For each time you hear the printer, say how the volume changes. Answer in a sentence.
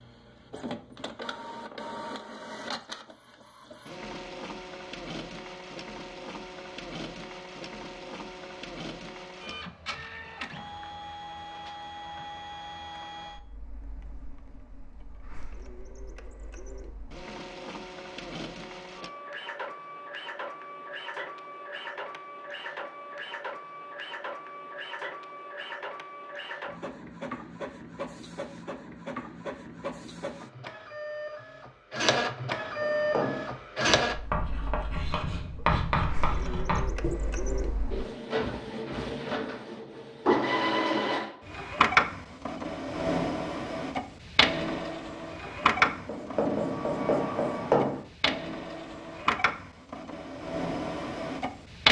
You can hear the printer from 0.0 to 51.8 s, getting louder.